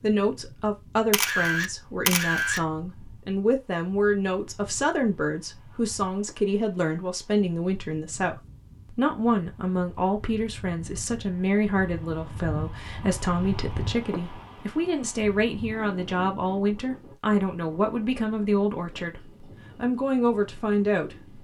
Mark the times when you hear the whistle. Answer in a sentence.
You can't hear the whistle here.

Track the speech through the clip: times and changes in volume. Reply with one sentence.
You can hear the speech from 0.0 to 21.4 s, at a steady volume.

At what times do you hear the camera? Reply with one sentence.
You can hear the camera from 1.1 to 2.6 s.